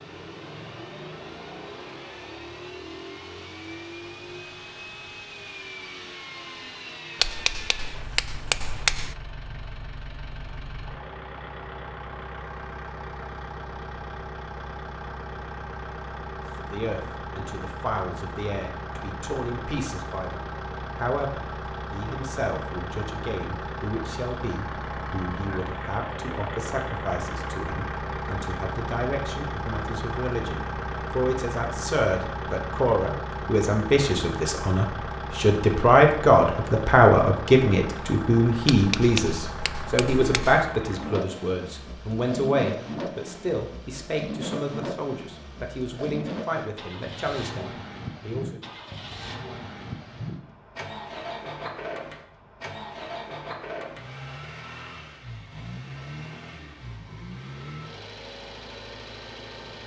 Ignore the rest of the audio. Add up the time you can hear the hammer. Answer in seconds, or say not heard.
4 s.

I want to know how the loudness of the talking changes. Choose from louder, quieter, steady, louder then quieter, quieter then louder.
louder then quieter.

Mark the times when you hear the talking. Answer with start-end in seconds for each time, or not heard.
16.6-48.6.